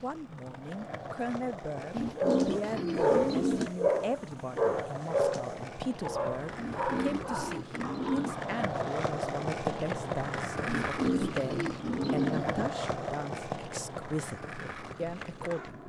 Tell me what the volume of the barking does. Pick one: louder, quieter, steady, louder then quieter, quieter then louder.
quieter.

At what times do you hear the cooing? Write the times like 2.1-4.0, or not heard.
1.9-3.7, 6.5-8.5, 10.7-12.7.